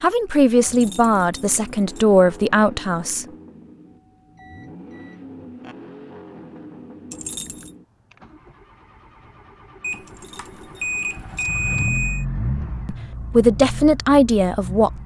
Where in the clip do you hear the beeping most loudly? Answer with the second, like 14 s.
12 s.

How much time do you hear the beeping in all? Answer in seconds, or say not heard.
4 s.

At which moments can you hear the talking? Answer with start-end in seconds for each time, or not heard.
0.0-3.2, 12.8-15.0.